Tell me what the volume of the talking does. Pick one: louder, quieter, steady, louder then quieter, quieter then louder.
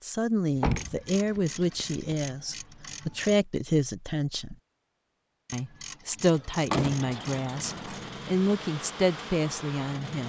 steady.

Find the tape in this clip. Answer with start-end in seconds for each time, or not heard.
not heard.